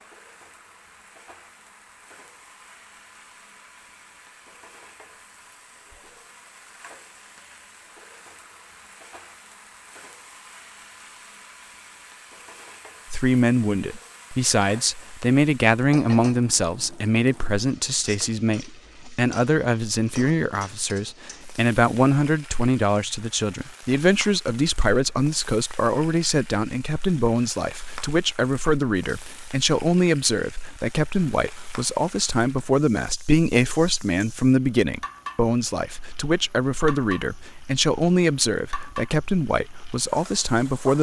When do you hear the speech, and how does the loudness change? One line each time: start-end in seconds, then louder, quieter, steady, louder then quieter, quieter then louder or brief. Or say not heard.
13.1-40.9 steady.